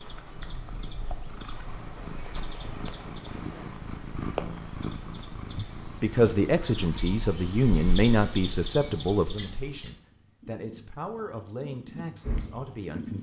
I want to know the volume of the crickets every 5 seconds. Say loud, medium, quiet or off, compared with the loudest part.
medium, loud, off.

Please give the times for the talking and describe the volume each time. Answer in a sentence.
The talking can be heard from 5.5 to 13.1 s, getting quieter.